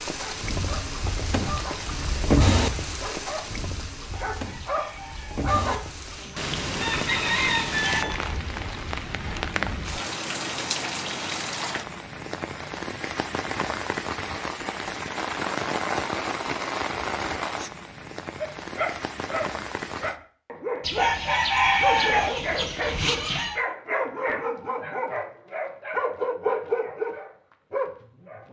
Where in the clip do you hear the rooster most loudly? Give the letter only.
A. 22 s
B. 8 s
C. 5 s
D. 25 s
A.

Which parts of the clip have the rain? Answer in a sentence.
You can hear the rain from 0.0 to 20.2 s.